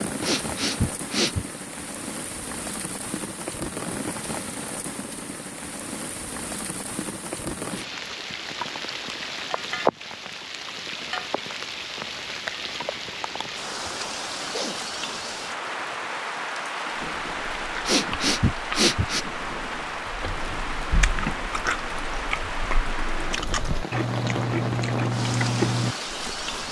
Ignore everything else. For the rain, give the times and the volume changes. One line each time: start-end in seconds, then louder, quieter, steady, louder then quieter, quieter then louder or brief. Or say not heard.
0.0-26.6 steady.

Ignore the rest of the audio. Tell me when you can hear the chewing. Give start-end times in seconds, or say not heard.
16.9-26.6.